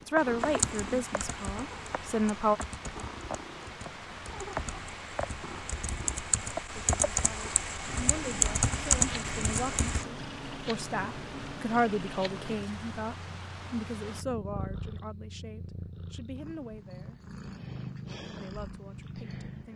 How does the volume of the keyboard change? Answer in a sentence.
The volume of the keyboard goes up.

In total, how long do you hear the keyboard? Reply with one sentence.
You can hear the keyboard for 10 seconds altogether.